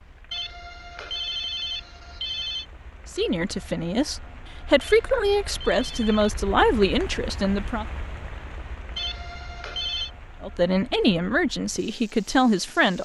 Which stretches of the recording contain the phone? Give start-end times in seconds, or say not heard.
0.3-2.6, 4.8-6.4, 8.9-10.1.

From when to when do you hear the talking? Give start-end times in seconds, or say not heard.
3.1-7.8, 10.4-13.0.